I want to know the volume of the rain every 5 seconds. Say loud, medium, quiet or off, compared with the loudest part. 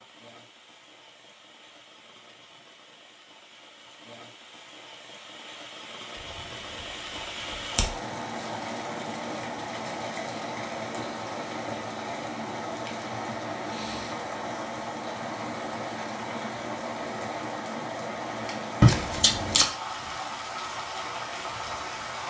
quiet, loud, loud, loud, loud.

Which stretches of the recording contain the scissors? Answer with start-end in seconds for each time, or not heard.
18.8-19.6.